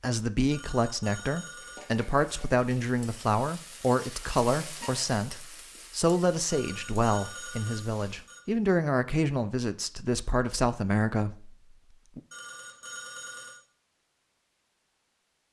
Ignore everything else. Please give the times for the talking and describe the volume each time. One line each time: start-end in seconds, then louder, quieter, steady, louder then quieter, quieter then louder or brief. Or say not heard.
0.0-12.2 steady.